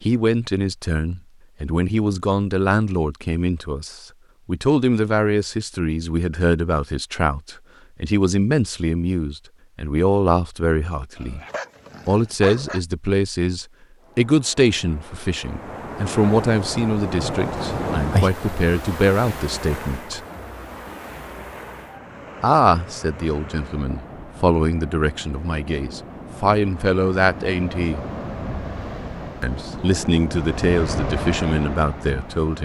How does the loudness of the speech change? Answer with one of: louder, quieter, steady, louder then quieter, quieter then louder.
steady.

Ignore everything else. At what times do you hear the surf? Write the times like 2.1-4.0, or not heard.
14.0-32.6.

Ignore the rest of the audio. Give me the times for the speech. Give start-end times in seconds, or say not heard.
0.0-11.4, 12.1-20.2, 22.4-28.1, 29.4-32.6.